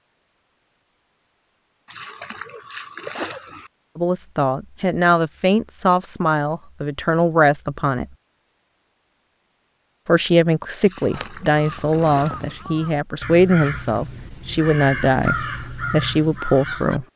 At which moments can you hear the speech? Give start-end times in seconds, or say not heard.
4.0-8.1, 10.1-17.1.